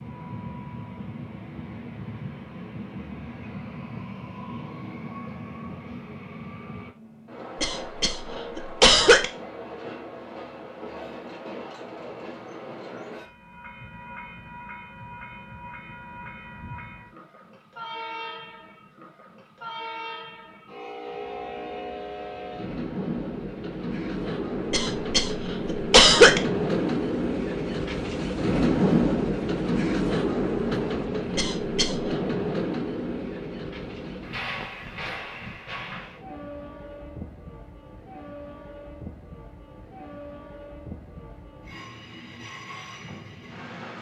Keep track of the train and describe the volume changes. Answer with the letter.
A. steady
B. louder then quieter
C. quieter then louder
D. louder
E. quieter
B.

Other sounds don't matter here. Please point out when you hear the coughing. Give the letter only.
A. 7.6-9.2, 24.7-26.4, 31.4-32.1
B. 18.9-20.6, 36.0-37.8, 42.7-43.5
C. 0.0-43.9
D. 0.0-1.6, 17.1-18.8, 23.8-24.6
A.